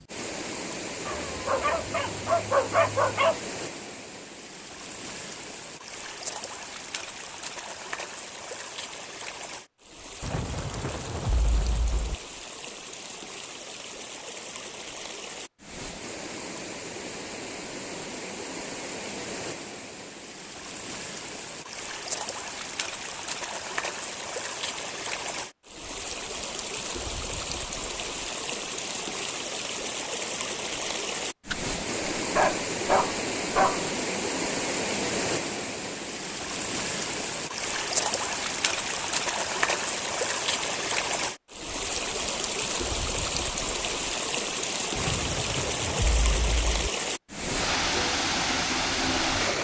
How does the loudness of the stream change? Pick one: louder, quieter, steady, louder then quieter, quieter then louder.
louder.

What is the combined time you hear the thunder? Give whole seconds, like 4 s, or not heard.
4 s.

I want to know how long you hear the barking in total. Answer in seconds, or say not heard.
5 s.